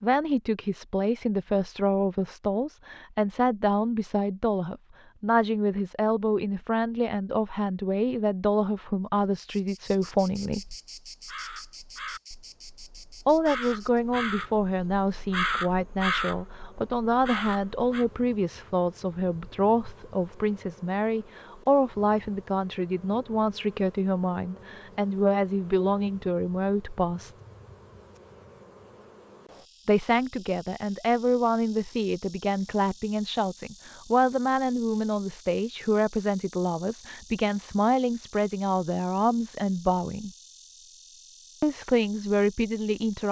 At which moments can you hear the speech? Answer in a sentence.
You can hear the speech from 0.0 to 10.8 s, from 13.2 to 27.3 s, from 29.9 to 40.3 s and from 41.6 to 43.2 s.